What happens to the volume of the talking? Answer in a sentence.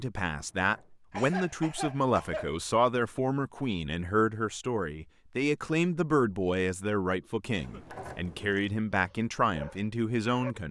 The loudness of the talking stays about the same.